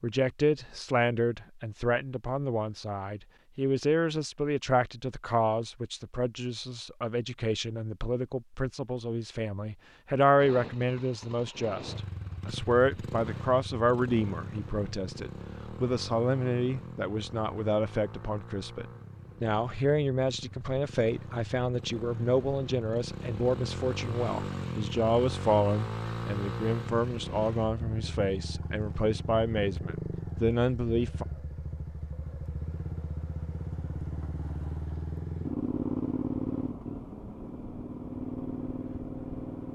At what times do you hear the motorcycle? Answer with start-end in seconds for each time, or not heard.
10.3-39.7.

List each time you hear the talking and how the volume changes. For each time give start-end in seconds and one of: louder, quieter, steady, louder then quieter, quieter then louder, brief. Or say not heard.
0.0-31.2 steady.